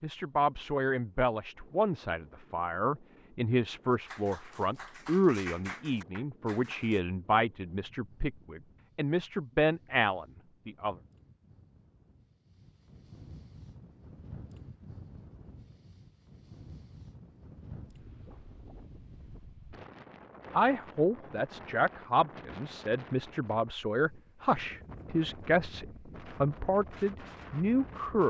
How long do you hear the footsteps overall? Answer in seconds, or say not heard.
not heard.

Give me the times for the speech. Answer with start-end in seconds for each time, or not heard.
0.0-10.9, 20.5-28.2.